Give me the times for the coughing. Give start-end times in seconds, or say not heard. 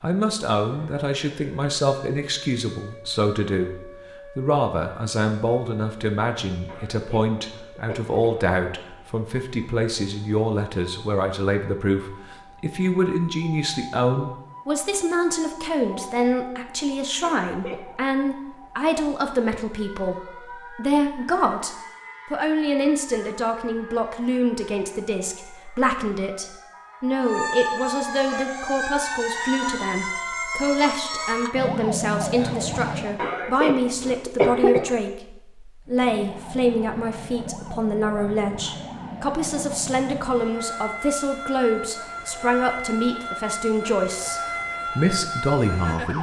6.7-8.2, 17.2-17.9, 33.1-35.0.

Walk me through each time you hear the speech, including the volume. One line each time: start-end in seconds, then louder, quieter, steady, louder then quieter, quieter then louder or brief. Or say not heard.
0.0-46.1 steady.